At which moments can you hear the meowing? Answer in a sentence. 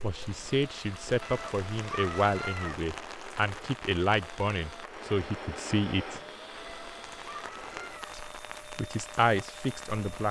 You can hear the meowing from 1.2 to 2.9 s and from 6.5 to 8.2 s.